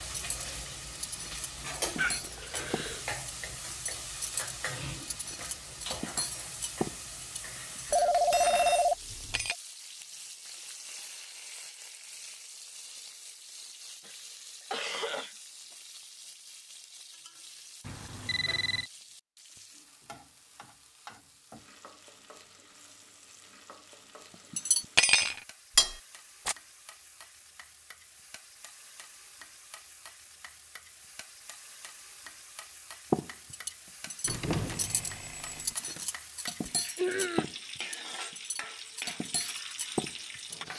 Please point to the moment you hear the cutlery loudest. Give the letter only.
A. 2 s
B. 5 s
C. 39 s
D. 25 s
D.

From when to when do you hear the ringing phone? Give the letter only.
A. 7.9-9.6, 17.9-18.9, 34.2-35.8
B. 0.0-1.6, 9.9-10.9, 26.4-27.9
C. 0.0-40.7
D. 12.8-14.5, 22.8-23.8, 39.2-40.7
A.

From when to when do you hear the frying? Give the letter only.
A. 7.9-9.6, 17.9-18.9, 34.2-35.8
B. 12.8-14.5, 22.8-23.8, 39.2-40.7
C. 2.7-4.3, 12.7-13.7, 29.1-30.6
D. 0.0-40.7
D.